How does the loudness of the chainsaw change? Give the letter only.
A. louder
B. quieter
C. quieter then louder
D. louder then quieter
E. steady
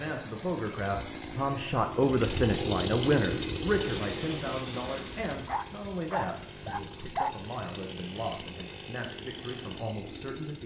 D.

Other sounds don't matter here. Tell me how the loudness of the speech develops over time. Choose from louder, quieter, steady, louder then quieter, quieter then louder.
quieter.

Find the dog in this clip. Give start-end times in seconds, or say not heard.
5.5-7.3.